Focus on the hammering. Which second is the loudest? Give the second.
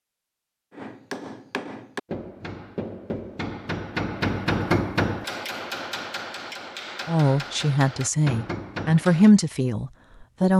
5 s.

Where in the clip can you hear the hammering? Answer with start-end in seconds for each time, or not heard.
0.7-9.3.